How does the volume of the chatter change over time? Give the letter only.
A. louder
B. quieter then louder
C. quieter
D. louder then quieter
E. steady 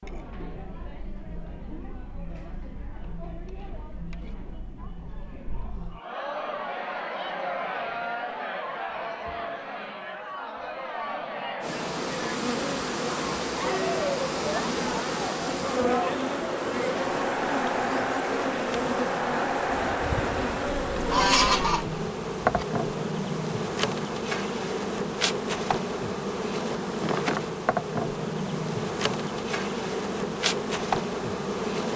A.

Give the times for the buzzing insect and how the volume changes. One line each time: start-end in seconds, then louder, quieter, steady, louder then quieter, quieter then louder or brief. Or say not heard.
11.6-31.9 steady.